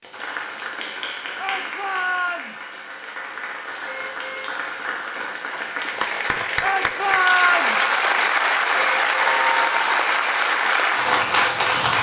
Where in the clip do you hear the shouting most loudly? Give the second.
7 s.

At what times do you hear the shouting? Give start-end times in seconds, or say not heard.
1.4-2.8, 6.6-8.0.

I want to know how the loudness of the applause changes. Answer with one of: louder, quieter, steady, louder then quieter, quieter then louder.
louder.